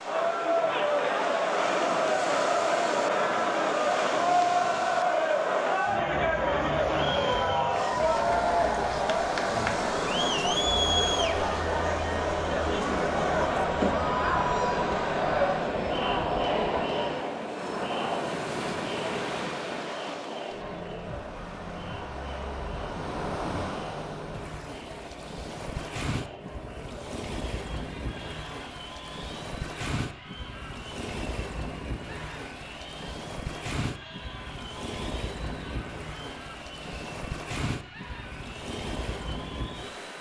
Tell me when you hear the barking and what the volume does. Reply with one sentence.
You can't hear the barking here.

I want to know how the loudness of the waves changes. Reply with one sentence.
The volume of the waves stays about the same.